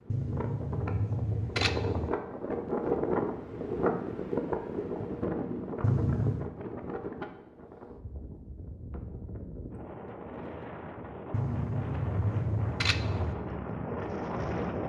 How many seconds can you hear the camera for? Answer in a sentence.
The camera can be heard for 5 seconds in total.